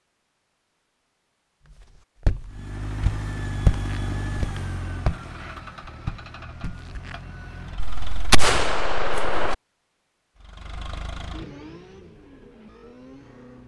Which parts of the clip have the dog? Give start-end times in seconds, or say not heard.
not heard.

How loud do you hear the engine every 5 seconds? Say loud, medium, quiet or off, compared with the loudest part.
loud, medium, medium.